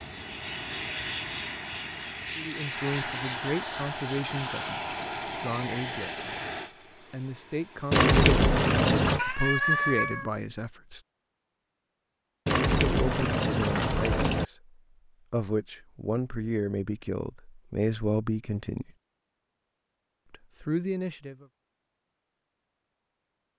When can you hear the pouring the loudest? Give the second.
8 s.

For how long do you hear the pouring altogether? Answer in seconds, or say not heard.
3 s.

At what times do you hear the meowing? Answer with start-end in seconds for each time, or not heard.
9.2-10.3.